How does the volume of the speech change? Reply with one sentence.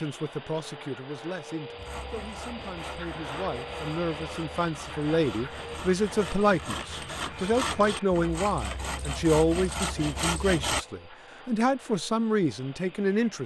The loudness of the speech goes up.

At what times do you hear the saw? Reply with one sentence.
The saw can be heard from 1.8 to 10.8 s.